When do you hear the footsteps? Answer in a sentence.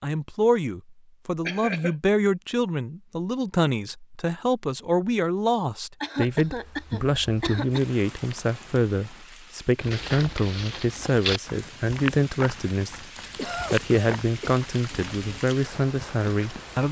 You can hear the footsteps from 9.8 to 15.4 s.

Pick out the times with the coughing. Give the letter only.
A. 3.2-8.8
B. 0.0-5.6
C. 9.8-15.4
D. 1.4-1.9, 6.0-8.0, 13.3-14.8
D.